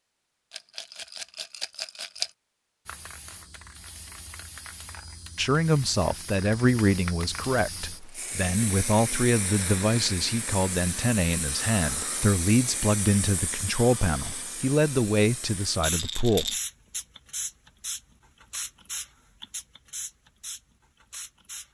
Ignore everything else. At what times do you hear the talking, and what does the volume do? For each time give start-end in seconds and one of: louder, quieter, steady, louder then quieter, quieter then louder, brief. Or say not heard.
5.3-16.6 steady.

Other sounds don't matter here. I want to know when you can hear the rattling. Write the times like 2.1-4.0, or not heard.
0.5-2.3, 15.8-16.6.